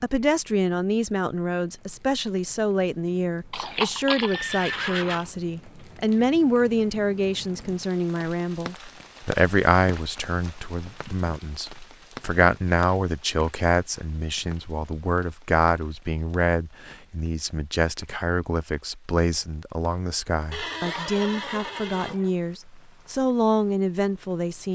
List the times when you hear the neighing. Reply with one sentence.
The neighing can be heard from 3.5 to 5.3 s and from 20.5 to 22.3 s.